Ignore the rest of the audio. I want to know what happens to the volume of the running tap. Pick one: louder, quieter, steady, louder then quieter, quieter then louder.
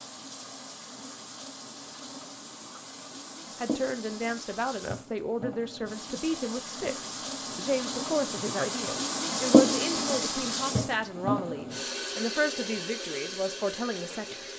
louder then quieter.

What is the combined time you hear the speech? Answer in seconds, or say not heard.
11 s.